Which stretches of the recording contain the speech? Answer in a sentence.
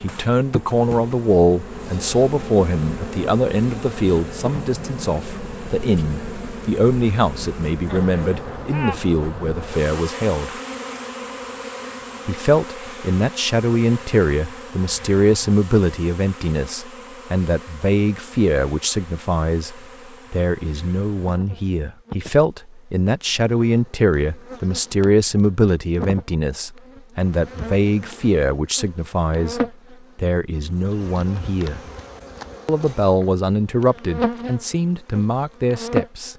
The speech can be heard from 0.0 to 10.5 s, from 12.2 to 31.8 s and from 32.6 to 36.3 s.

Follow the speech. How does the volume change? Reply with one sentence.
The loudness of the speech stays about the same.